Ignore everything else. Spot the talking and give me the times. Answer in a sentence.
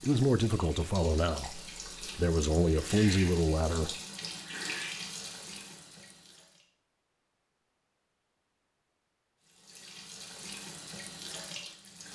You can hear the talking from 0.0 to 4.0 s.